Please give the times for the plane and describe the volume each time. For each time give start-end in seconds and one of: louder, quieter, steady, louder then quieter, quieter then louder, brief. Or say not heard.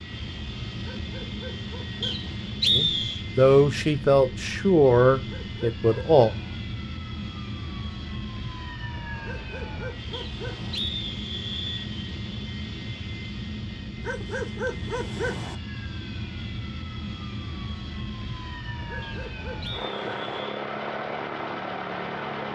0.0-22.5 steady.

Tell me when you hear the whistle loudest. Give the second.
3 s.